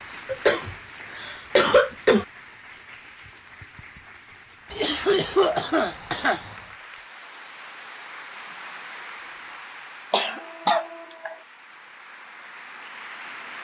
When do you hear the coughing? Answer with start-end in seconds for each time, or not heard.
0.2-2.2, 4.7-6.5, 10.1-11.3.